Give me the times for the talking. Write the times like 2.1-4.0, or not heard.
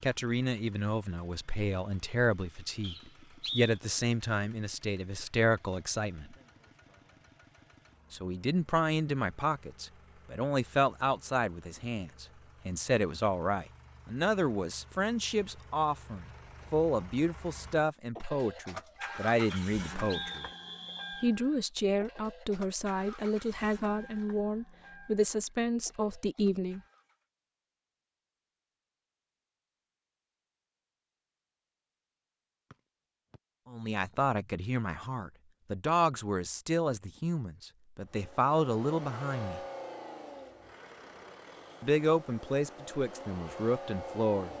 0.0-6.3, 8.1-20.5, 21.2-26.8, 33.6-39.6, 41.8-44.5.